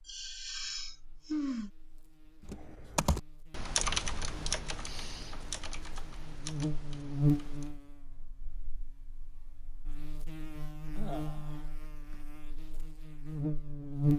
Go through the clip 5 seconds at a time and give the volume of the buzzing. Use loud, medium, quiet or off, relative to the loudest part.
quiet, loud, loud.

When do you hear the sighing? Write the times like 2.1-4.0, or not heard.
0.1-1.7, 4.8-5.4, 10.9-12.2.